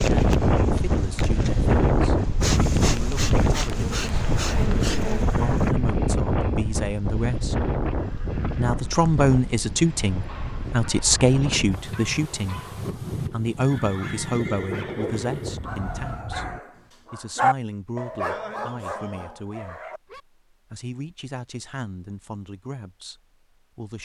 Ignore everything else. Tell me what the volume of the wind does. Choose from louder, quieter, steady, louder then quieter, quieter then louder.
quieter.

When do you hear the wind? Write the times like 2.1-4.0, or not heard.
0.0-16.6.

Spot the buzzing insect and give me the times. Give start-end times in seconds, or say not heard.
0.0-5.8.